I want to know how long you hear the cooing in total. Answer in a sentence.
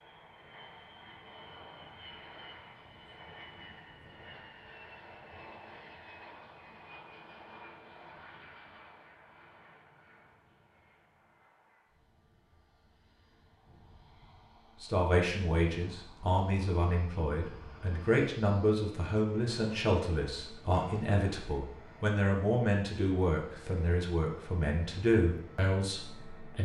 The cooing can't be heard in this clip.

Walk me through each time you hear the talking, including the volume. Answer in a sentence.
The talking can be heard from 14.8 to 26.6 s, at a steady volume.